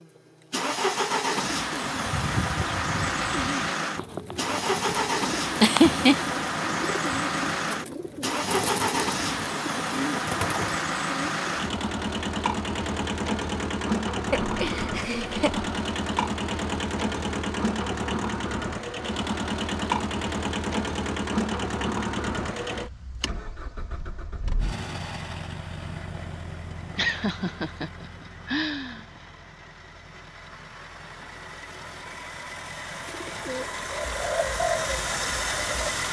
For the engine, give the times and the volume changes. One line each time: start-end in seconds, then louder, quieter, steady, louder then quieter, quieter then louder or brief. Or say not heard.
0.0-36.0 quieter.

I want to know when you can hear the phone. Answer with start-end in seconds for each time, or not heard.
not heard.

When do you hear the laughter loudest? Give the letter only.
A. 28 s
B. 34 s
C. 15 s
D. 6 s
D.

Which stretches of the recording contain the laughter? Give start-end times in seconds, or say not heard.
5.6-6.2, 14.3-15.7, 26.9-29.1.